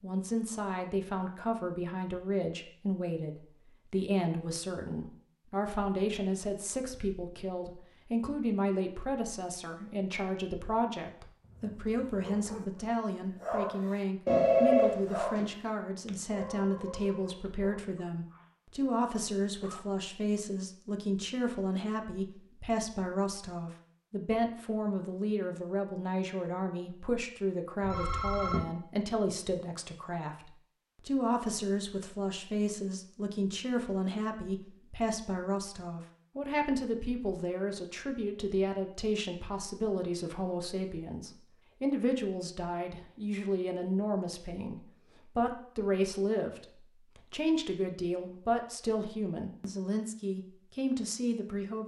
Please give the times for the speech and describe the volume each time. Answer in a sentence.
The speech can be heard from 0.0 to 51.8 s, at a steady volume.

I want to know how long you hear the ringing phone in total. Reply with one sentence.
The ringing phone can be heard for 2 seconds in total.